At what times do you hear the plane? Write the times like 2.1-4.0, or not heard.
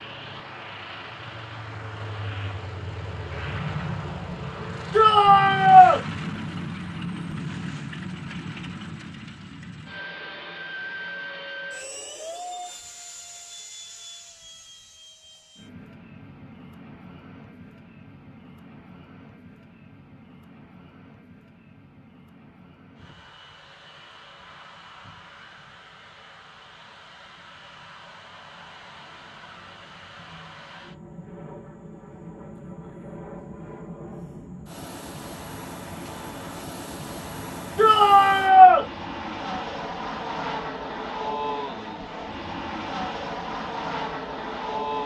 0.0-45.0.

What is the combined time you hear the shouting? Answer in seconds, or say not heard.
2 s.